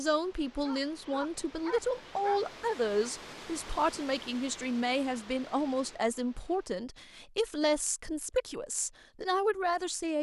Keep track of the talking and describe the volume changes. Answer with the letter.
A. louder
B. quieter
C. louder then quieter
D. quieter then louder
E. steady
E.